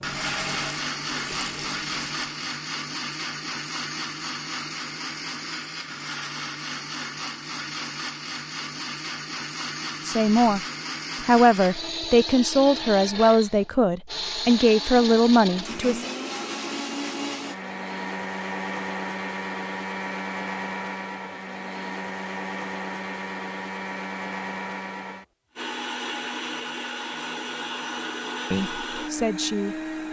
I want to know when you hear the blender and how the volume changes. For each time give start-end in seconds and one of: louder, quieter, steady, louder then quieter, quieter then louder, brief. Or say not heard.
0.0-30.0 steady.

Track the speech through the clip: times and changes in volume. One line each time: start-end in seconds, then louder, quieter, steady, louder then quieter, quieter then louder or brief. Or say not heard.
10.1-10.6 brief
11.2-16.1 steady
28.5-29.8 brief.